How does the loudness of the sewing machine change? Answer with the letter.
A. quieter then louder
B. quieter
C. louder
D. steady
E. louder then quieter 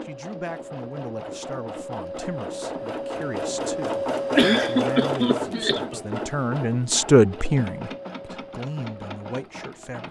E.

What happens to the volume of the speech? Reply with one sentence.
The loudness of the speech goes up, then down.